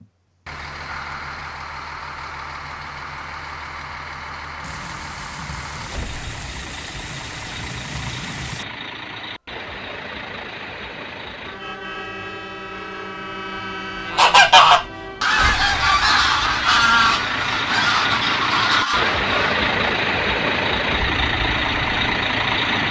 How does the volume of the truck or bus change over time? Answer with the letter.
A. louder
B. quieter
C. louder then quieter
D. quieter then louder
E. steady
A.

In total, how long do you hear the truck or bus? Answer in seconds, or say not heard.
23 s.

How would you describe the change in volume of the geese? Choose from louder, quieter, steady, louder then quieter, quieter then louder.
quieter.